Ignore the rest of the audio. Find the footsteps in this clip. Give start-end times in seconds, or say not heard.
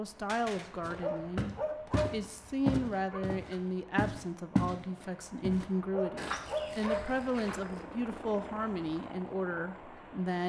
0.8-4.8, 5.4-7.8.